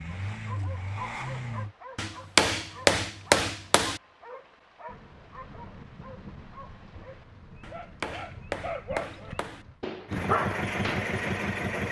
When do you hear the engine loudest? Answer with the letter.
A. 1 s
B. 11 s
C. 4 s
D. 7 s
B.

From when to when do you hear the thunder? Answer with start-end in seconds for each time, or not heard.
4.8-9.8.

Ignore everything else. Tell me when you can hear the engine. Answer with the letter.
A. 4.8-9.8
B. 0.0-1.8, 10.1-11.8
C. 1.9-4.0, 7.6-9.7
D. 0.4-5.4
B.